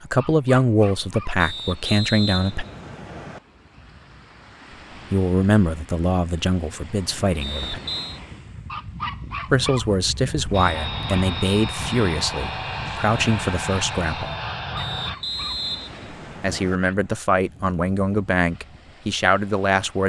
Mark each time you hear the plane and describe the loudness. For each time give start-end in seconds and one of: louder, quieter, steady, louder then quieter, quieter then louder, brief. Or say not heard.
10.5-15.2 steady.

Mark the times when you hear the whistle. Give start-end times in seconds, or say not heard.
1.4-3.4, 7.4-8.2, 14.8-16.8.